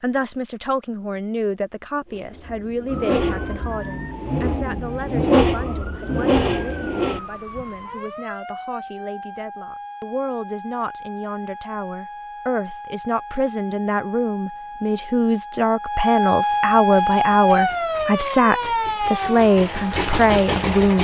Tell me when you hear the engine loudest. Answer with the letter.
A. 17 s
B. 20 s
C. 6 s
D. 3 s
C.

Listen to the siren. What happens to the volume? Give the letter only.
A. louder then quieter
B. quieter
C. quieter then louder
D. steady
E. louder
E.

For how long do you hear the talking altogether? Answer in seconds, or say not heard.
21 s.